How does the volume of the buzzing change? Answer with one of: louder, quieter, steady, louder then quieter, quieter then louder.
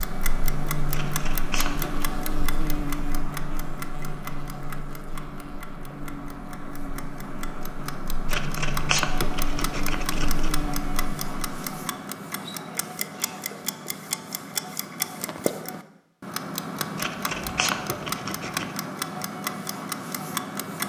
quieter then louder.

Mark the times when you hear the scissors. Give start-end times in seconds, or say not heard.
0.9-2.0, 8.2-10.5, 16.9-18.7.